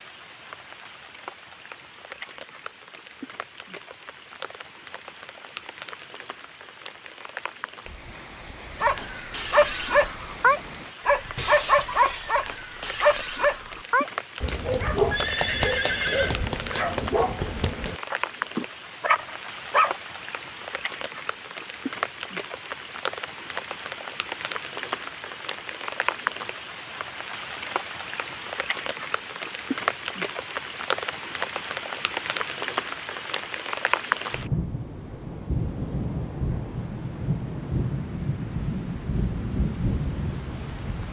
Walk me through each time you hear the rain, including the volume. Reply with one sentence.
You can hear the rain from 0.0 to 41.0 s, getting louder.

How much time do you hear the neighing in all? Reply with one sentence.
You can hear the neighing for 2 seconds altogether.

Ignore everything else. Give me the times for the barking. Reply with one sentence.
You can hear the barking from 8.8 to 19.9 s.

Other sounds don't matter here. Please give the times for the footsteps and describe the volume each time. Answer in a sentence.
You can't hear the footsteps here.